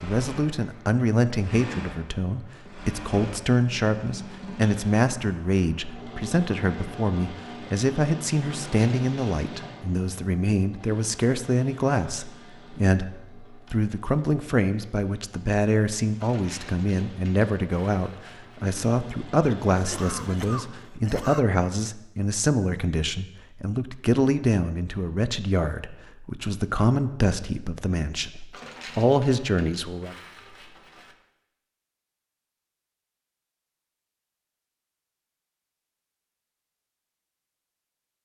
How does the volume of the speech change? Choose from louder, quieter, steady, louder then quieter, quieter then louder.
steady.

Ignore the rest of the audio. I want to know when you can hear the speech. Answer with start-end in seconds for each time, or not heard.
0.0-30.1.